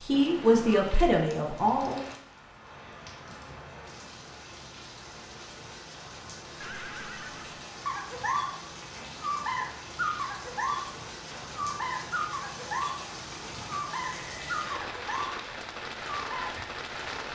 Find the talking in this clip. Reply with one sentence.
The talking can be heard from 0.0 to 2.0 s.